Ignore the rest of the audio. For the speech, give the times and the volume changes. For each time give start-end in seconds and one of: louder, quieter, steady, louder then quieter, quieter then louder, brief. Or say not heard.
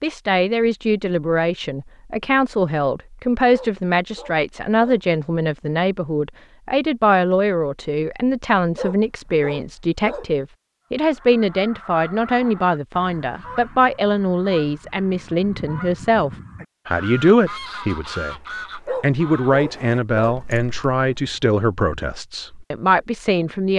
0.0-23.7 steady.